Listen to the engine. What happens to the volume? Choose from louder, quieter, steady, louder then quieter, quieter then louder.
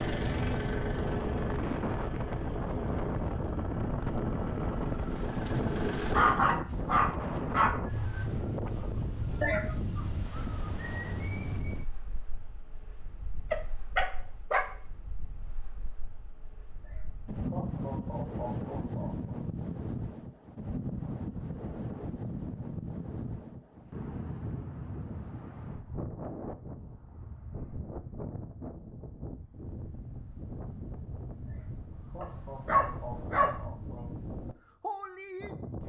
quieter then louder.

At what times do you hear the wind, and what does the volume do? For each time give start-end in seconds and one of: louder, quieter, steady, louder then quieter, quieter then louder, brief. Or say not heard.
0.0-35.8 quieter.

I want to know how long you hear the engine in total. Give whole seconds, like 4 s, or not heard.
6 s.